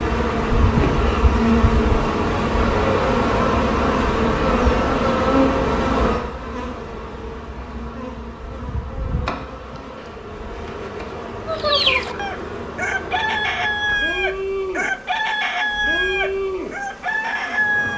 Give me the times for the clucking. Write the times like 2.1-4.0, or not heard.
11.4-17.9.